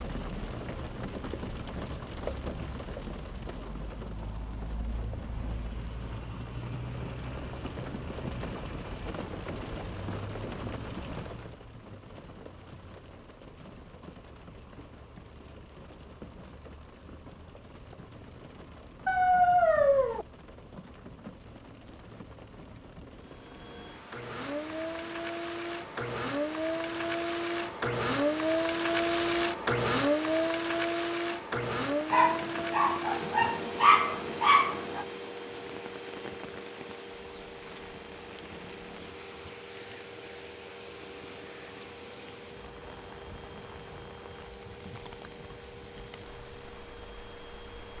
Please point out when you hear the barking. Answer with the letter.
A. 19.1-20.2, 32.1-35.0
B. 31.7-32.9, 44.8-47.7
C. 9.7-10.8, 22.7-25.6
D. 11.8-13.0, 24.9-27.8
A.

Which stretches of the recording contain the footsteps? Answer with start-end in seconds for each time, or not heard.
not heard.